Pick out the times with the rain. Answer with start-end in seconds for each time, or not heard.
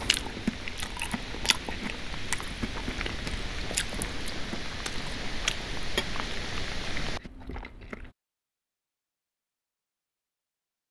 0.0-7.2.